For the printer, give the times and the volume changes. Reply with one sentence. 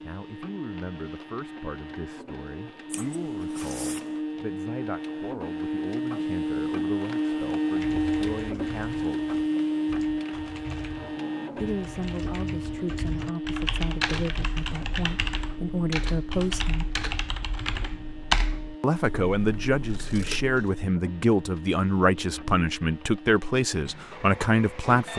You can hear the printer from 0.0 to 25.1 s, getting louder then quieter.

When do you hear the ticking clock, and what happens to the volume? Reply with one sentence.
The ticking clock can't be heard in this clip.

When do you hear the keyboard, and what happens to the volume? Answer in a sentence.
You can hear the keyboard from 7.7 to 18.8 s, getting louder.